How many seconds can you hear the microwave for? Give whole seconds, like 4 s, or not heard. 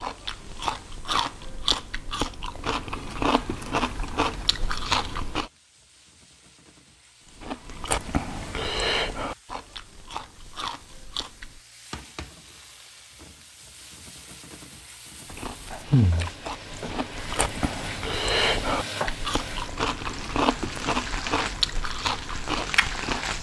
not heard.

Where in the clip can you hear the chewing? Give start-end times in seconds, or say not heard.
0.0-5.5, 7.2-11.6, 15.3-23.3.